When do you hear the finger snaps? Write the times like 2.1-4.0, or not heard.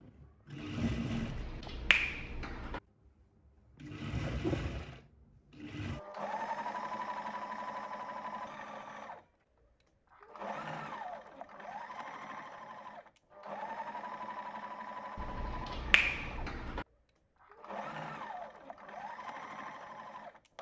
1.1-2.8, 15.2-16.9.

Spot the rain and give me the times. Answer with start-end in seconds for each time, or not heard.
not heard.